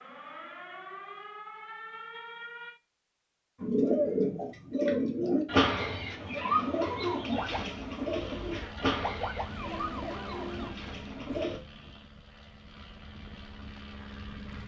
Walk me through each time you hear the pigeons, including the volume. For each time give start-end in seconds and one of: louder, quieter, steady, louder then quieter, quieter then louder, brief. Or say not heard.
3.6-11.6 quieter.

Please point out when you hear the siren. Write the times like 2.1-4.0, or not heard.
0.0-2.8, 7.2-10.8.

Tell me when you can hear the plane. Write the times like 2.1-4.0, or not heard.
8.1-14.6.